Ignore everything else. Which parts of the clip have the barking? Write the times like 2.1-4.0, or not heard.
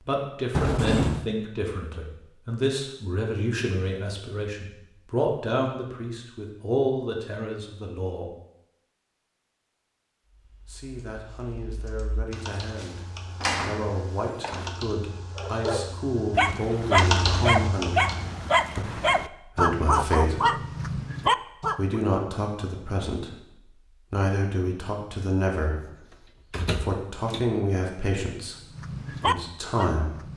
15.3-22.0, 28.7-30.3.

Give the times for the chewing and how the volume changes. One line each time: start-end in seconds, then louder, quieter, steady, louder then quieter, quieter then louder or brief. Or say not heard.
not heard.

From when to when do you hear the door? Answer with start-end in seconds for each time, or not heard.
0.5-1.2, 12.5-14.7, 26.5-27.5.